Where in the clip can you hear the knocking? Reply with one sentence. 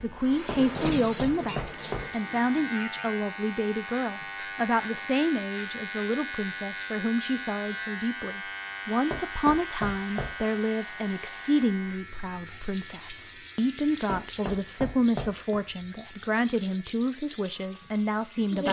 The knocking can be heard from 0.5 to 2.1 s, from 9.1 to 10.3 s and from 14.1 to 15.6 s.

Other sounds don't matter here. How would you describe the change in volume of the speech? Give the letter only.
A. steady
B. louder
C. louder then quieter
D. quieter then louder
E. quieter
A.